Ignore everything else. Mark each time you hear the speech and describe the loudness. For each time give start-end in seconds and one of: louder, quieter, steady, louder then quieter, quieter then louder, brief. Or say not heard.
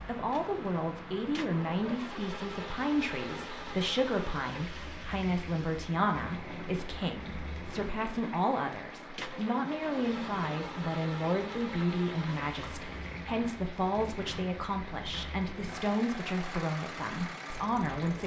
0.1-18.2 steady.